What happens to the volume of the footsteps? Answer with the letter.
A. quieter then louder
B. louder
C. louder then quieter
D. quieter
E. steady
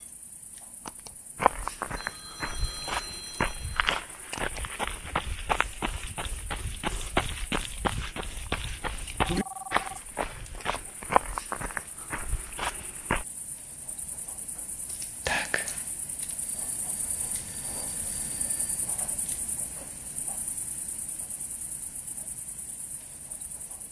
E.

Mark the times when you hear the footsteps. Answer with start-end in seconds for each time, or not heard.
1.4-13.2.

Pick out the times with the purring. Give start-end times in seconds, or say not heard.
not heard.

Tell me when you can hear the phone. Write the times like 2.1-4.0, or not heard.
1.9-3.9, 8.7-10.0, 16.4-18.9.